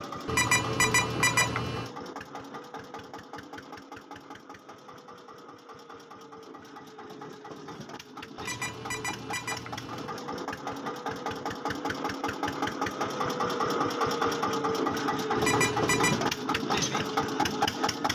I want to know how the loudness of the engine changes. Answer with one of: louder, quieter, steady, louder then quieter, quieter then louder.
quieter then louder.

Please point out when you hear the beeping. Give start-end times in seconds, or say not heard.
0.2-1.9, 8.3-10.1, 15.3-16.2.